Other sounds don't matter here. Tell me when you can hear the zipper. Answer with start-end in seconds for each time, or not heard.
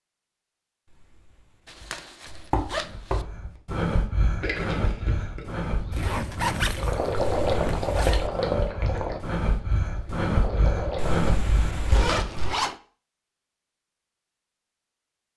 1.6-3.2, 5.9-8.2, 11.8-12.8.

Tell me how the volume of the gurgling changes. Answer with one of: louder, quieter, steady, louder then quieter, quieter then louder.
louder then quieter.